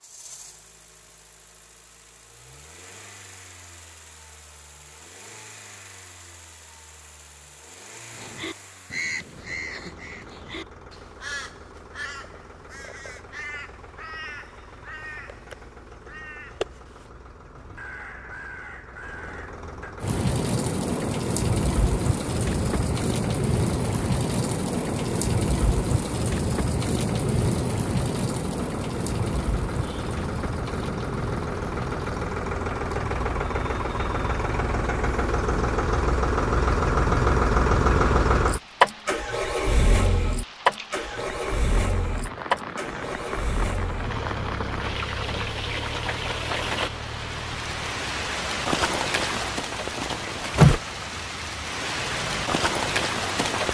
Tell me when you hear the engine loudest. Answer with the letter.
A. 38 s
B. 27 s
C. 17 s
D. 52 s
A.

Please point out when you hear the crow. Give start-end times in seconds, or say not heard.
8.1-19.9.